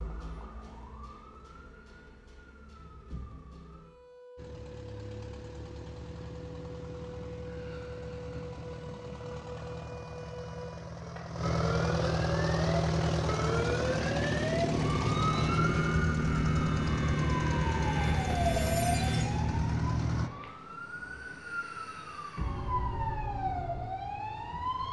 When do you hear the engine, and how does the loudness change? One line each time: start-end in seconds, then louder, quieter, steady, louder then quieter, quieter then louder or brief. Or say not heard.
4.3-20.3 louder.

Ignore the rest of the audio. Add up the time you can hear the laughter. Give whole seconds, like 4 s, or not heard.
2 s.